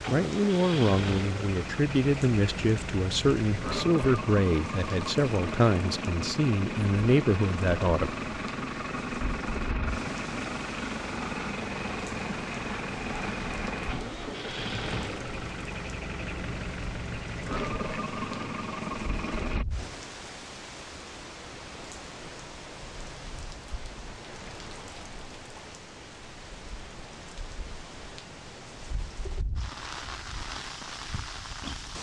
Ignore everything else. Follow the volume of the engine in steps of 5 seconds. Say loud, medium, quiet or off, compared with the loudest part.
loud, loud, loud, loud, off, off, off.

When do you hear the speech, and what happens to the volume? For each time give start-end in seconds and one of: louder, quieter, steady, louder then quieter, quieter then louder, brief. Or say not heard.
0.1-8.1 steady.